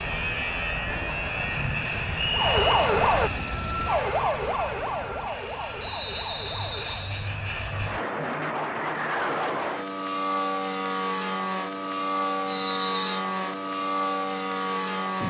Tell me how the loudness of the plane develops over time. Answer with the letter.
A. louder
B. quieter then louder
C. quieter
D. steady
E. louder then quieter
B.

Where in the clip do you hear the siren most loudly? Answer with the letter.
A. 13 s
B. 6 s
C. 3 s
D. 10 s
C.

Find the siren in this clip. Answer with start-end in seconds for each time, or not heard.
2.3-7.1.